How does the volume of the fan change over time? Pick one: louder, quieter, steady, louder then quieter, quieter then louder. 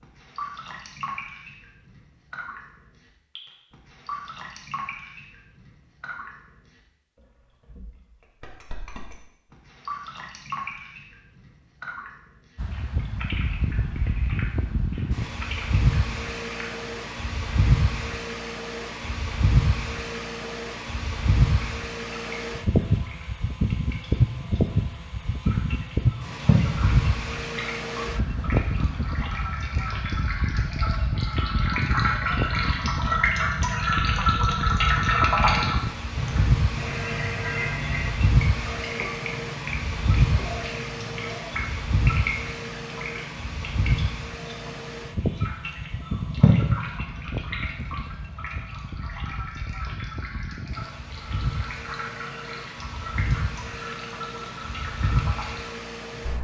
quieter.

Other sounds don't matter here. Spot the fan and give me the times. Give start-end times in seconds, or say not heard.
12.6-56.3.